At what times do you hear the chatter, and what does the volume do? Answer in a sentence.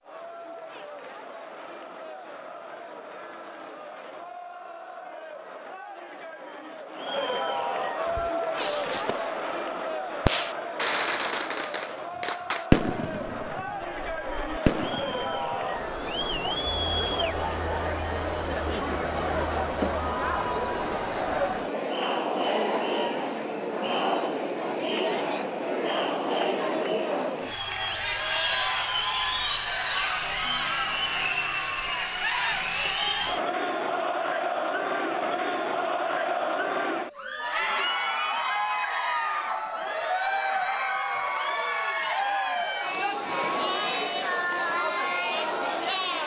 You can hear the chatter from 0.0 to 46.2 s, getting louder.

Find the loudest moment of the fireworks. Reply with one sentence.
The loudest moment of the fireworks is at 13 seconds.